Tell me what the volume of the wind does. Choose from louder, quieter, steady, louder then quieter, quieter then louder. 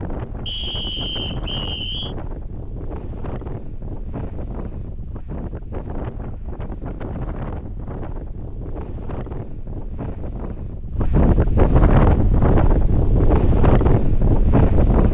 louder.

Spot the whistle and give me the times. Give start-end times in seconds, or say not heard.
0.5-2.1.